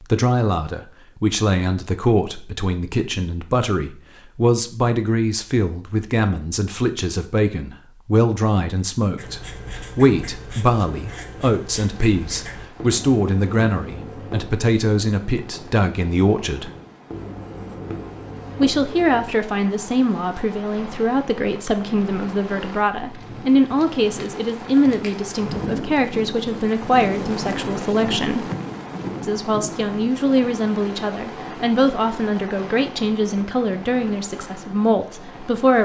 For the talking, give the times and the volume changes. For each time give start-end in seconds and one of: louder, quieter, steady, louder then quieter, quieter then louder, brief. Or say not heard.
0.0-16.7 steady
18.6-28.4 steady
29.2-35.8 steady.